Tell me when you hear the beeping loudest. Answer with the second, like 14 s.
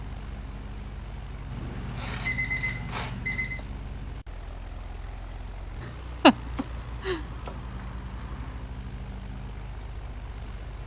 2 s.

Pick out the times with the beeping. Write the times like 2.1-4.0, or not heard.
1.5-3.6, 6.3-8.7.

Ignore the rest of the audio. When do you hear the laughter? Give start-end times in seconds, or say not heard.
5.8-7.2.